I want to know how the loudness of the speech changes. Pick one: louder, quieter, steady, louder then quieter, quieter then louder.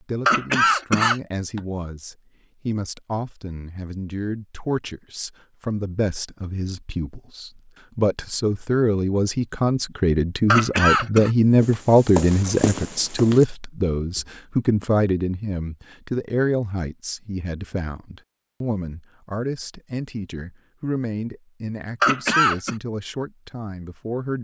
louder then quieter.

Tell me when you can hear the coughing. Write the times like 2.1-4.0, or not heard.
0.2-1.6, 10.4-11.3, 22.0-22.8.